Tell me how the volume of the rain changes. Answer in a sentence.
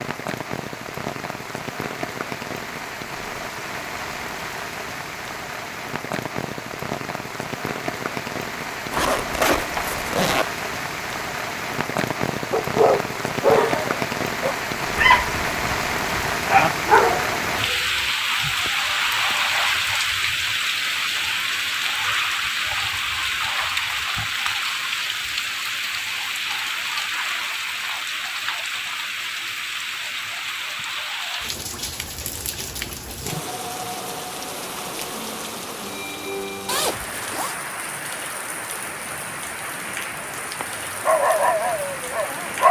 The loudness of the rain goes up, then down.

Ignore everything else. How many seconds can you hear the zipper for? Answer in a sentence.
The zipper can be heard for 4 seconds in total.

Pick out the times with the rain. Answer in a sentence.
You can hear the rain from 0.0 to 42.6 s.